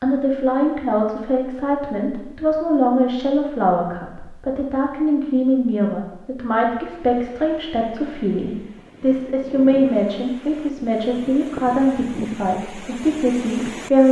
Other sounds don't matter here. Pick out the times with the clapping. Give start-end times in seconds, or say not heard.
not heard.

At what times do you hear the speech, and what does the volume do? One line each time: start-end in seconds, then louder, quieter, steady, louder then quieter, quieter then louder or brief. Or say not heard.
0.0-14.0 steady.